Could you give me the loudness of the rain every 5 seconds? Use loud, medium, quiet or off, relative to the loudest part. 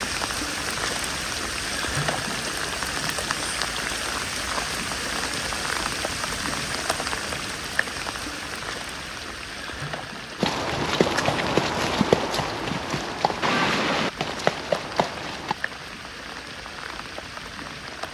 loud, loud, medium, medium.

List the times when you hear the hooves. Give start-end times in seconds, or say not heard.
10.4-15.6.